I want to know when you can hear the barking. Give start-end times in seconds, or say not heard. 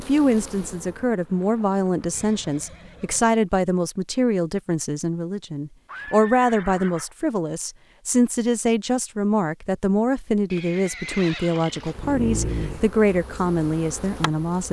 11.8-12.9.